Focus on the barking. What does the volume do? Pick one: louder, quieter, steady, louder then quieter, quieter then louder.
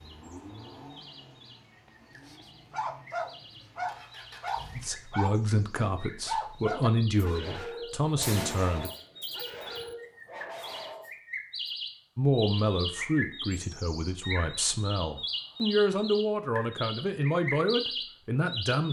quieter.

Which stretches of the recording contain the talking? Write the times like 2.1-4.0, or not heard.
4.8-8.9, 12.2-18.8.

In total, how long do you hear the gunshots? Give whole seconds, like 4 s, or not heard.
2 s.